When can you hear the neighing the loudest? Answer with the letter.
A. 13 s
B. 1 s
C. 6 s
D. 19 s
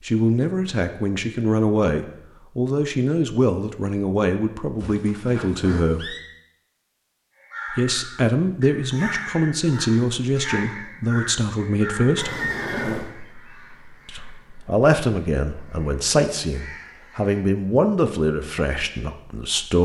A.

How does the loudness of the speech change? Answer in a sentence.
The loudness of the speech stays about the same.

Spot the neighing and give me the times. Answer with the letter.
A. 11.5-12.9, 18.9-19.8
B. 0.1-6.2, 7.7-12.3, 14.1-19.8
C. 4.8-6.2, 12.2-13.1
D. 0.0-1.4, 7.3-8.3
C.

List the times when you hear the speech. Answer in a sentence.
The speech can be heard from 0.1 to 6.2 s, from 7.7 to 12.3 s and from 14.1 to 19.8 s.